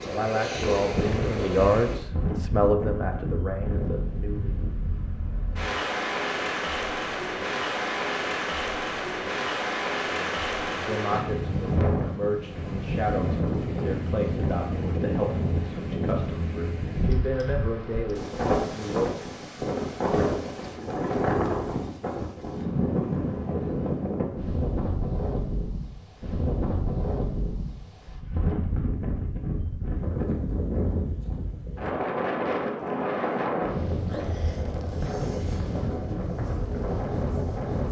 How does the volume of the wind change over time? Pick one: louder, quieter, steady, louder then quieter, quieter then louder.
steady.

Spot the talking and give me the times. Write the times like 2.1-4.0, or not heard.
0.1-4.5, 10.1-19.3.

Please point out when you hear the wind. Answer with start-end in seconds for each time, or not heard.
0.0-37.8.